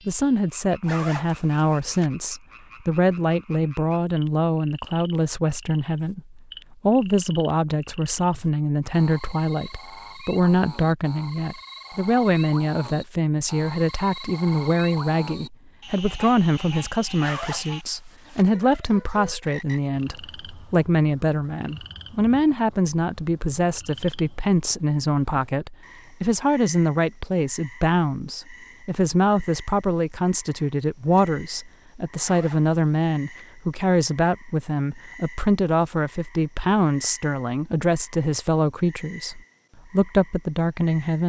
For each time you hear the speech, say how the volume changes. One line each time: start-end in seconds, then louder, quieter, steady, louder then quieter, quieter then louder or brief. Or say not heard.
0.1-41.2 steady.